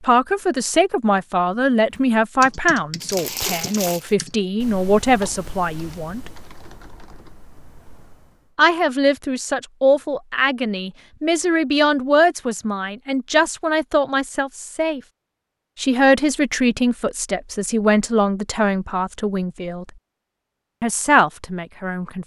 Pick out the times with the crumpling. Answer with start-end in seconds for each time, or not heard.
3.0-4.1.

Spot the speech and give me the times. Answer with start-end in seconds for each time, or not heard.
0.0-6.3, 8.6-15.0, 15.8-19.9, 20.8-22.2.